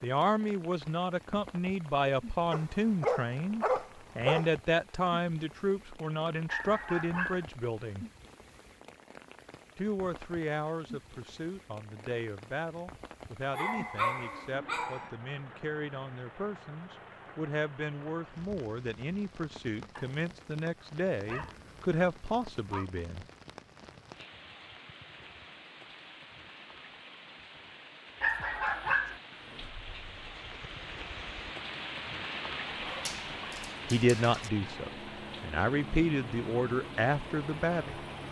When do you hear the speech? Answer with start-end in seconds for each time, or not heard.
0.0-8.1, 9.8-23.2, 33.9-38.0.